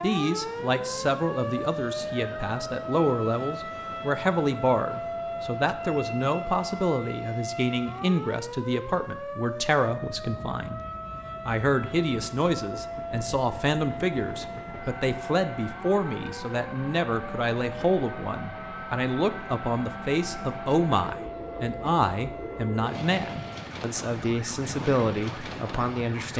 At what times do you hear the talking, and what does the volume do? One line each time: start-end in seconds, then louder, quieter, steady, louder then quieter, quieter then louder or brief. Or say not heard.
0.0-10.8 steady
11.4-26.3 steady.